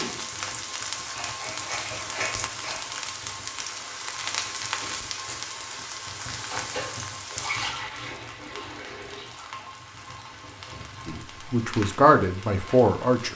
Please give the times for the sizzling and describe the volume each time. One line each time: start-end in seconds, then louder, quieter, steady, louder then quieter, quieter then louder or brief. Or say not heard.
0.0-13.3 quieter.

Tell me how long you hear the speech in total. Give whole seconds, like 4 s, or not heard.
2 s.